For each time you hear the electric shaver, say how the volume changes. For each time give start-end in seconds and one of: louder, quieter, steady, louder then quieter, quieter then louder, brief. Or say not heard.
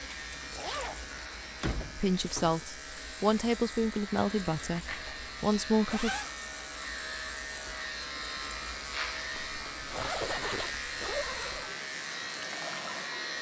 0.0-13.3 louder.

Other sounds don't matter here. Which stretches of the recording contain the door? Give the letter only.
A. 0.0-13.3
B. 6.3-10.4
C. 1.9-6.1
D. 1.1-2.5
D.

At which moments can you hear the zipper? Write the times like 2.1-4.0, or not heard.
0.6-1.1, 4.8-6.3, 9.3-11.8.